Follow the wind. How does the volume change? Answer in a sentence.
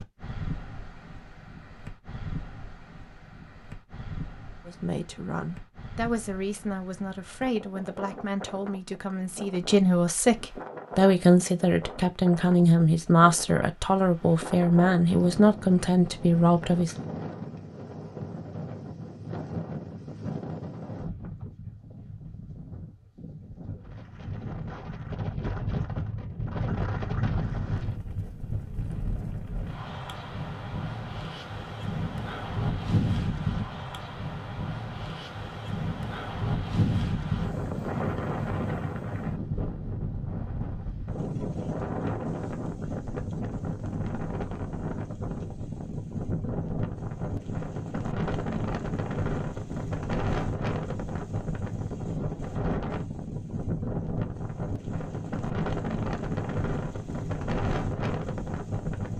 The volume of the wind goes up.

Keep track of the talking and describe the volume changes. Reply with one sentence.
The loudness of the talking goes up.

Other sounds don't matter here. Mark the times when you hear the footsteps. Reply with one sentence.
The footsteps can't be heard in this clip.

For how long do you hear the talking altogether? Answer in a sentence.
You can hear the talking for 12 seconds altogether.